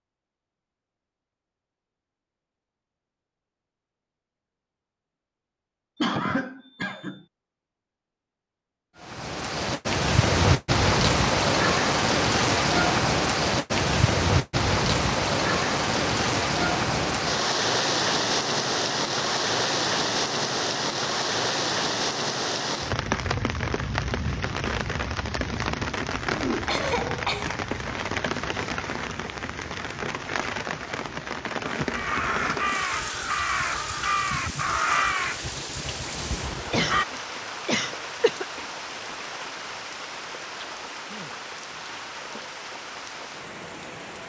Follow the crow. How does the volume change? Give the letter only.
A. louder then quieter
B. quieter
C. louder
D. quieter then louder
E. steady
B.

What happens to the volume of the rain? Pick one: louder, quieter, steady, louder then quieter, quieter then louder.
quieter.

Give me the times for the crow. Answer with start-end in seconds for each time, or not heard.
31.8-37.0.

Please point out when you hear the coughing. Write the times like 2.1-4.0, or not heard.
6.0-7.2, 26.6-27.6, 36.7-38.6.